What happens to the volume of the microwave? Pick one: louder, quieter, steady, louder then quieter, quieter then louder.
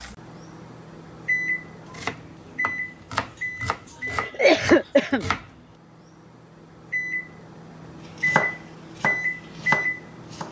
quieter then louder.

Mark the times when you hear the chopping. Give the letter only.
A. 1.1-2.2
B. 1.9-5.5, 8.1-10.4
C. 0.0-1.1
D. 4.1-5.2
B.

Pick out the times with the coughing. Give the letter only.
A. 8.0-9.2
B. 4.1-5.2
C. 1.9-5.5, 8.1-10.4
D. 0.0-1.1
B.